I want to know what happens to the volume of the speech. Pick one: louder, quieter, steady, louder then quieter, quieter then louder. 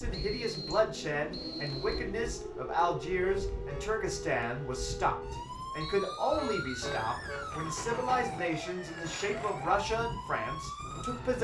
steady.